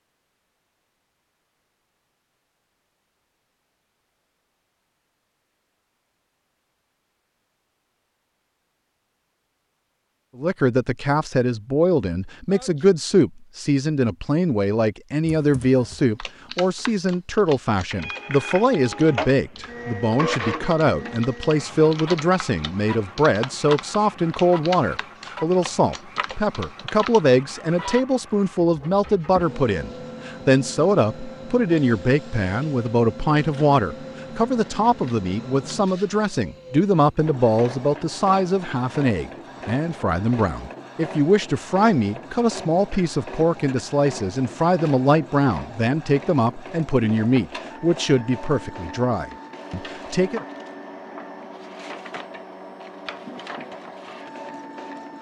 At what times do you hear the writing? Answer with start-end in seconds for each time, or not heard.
not heard.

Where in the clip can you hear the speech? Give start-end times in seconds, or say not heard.
10.3-50.5.